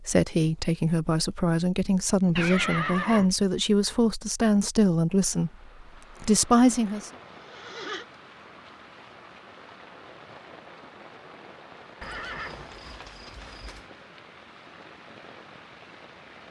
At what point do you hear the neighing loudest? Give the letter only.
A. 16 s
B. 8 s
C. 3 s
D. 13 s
C.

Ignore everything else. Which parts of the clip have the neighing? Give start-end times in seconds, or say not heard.
2.4-3.3, 7.0-8.1, 12.0-13.8.